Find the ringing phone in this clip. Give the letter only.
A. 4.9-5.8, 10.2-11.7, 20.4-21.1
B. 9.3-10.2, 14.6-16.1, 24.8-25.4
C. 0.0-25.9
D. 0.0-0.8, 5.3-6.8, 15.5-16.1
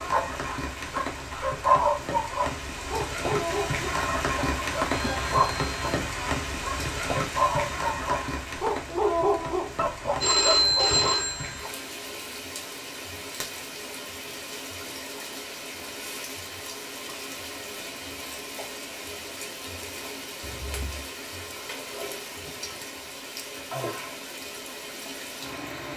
A.